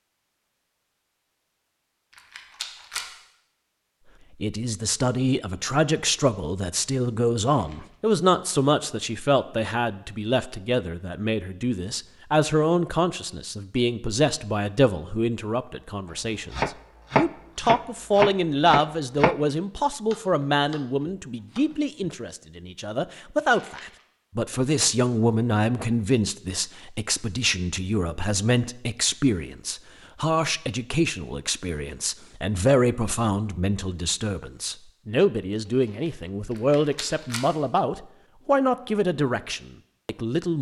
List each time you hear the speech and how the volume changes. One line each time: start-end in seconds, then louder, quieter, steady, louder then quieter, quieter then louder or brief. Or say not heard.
4.4-40.5 steady.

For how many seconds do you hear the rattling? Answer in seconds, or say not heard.
2 s.